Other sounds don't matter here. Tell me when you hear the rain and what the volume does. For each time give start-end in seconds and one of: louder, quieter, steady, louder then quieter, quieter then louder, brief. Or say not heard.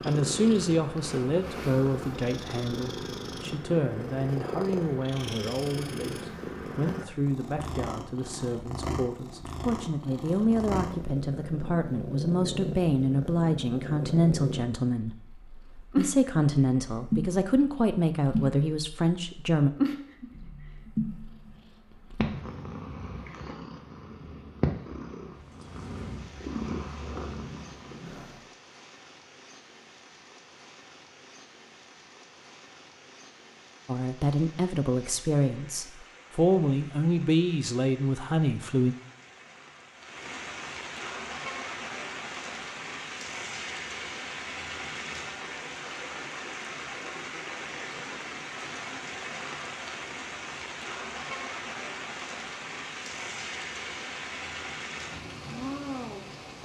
25.3-56.6 louder.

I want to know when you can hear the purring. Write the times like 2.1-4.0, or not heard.
0.0-28.4.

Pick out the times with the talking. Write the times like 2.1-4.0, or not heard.
0.0-19.7, 33.9-39.0.